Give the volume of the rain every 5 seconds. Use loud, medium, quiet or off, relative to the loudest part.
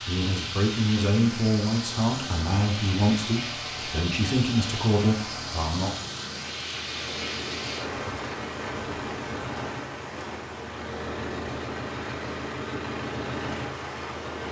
loud, loud, medium.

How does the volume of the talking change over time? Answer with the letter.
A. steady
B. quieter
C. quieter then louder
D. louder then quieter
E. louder
A.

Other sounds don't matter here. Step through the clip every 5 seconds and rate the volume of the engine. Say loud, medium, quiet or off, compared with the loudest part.
medium, loud, loud.